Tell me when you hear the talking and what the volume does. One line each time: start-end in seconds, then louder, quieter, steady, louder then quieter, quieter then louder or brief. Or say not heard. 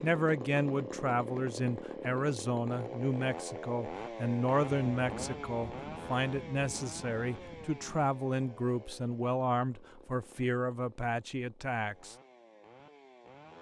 0.0-12.2 steady.